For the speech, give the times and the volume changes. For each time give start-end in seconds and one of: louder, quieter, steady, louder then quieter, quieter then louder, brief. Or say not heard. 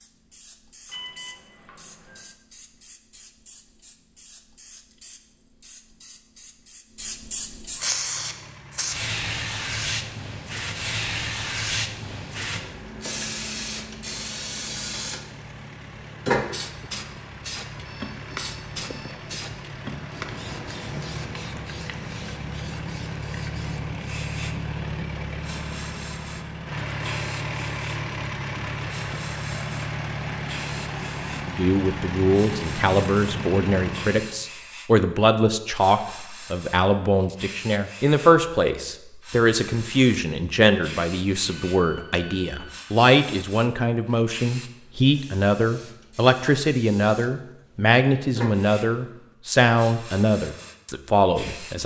31.4-51.8 steady.